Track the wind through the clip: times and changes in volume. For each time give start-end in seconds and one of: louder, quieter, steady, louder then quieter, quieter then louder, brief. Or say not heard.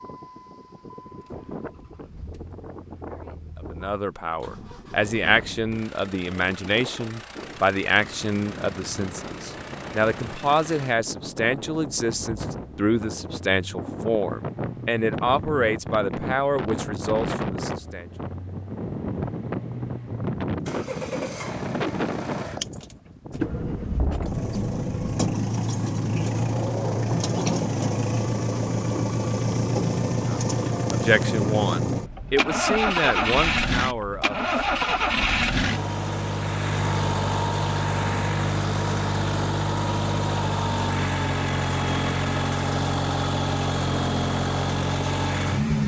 0.0-25.4 louder.